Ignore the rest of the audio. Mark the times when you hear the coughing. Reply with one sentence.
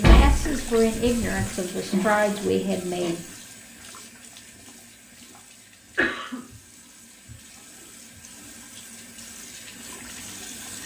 The coughing can be heard from 1.9 to 3.1 s and from 6.0 to 6.4 s.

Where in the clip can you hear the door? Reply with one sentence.
The door can be heard from 0.0 to 1.5 s.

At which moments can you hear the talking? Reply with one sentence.
You can hear the talking from 0.0 to 3.2 s.